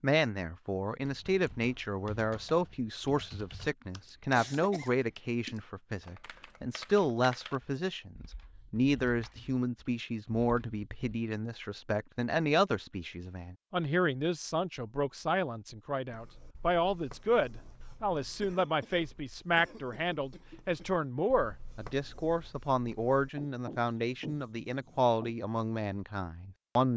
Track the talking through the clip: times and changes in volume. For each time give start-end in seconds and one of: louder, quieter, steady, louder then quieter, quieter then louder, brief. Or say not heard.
0.0-26.9 steady.